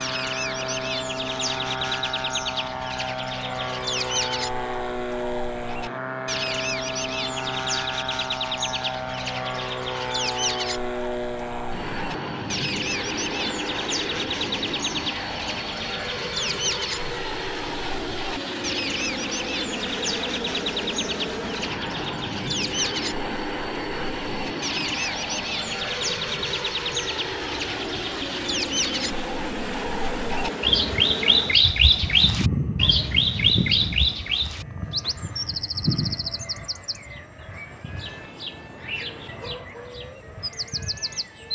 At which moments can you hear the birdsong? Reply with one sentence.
The birdsong can be heard from 0.0 to 41.5 s.